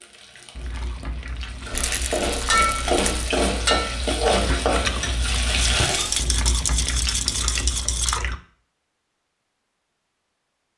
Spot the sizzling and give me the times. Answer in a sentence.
You can hear the sizzling from 0.0 to 6.2 s.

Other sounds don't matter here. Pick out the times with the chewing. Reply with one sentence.
You can hear the chewing from 0.6 to 8.4 s.